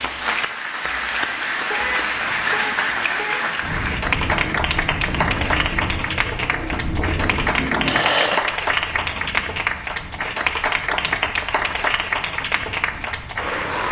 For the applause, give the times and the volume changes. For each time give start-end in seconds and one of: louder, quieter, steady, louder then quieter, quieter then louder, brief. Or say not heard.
0.0-13.8 steady.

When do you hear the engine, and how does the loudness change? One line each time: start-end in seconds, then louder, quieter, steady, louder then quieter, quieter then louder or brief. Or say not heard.
3.9-8.4 louder.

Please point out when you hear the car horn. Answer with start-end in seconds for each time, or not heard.
1.7-3.5.